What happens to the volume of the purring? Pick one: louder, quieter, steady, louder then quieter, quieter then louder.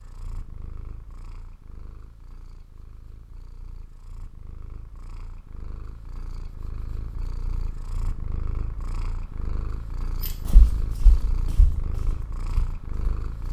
louder.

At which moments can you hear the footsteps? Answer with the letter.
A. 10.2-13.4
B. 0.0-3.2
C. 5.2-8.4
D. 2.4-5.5
A.